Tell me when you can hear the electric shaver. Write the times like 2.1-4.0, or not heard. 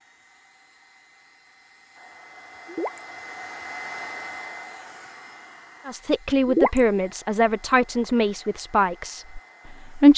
not heard.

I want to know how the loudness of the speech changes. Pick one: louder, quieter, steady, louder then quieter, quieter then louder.
quieter.